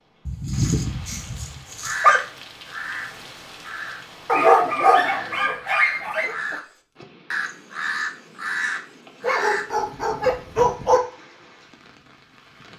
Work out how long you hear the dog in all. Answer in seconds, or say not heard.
6 s.